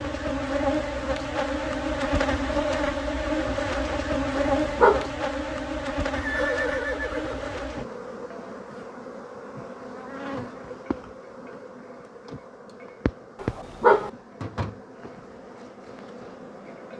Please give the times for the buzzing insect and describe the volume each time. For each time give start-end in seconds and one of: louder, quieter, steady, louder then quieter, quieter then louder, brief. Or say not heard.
0.0-16.9 quieter.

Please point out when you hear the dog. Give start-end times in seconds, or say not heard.
4.3-5.1, 13.4-14.1.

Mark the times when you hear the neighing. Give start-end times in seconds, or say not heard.
6.1-7.7.